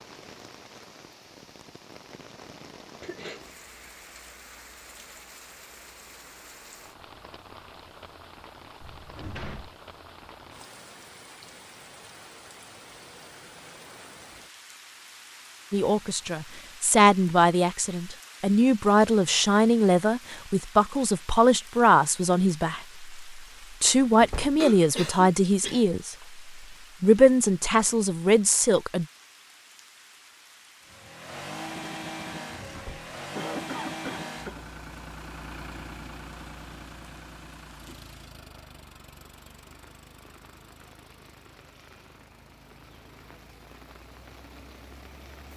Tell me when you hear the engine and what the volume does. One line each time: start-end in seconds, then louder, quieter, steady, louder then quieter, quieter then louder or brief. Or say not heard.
30.9-45.5 quieter.